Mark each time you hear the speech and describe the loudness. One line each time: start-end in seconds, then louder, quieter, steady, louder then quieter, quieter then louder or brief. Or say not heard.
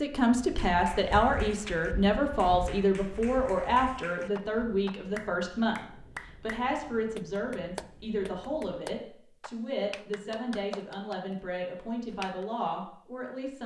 0.0-13.6 quieter.